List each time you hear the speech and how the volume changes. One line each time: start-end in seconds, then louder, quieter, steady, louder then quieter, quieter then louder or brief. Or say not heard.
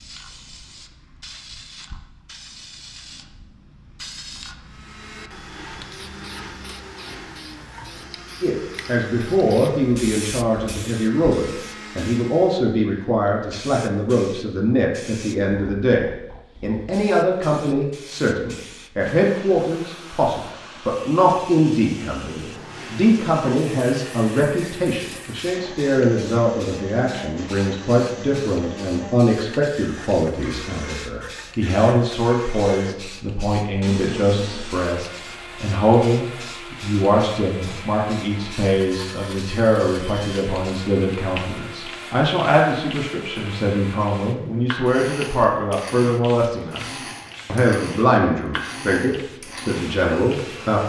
8.4-50.8 steady.